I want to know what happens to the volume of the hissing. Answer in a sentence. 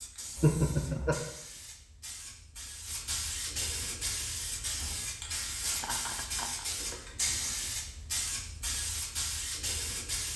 The loudness of the hissing goes up.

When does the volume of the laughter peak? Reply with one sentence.
The volume of the laughter peaks at 1 second.